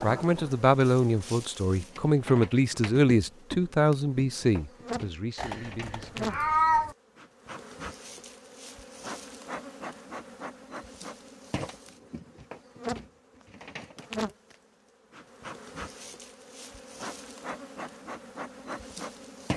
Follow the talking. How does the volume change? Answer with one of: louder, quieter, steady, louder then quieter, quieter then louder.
quieter.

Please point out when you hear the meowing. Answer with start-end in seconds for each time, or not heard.
5.3-7.0.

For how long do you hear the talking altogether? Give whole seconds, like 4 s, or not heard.
6 s.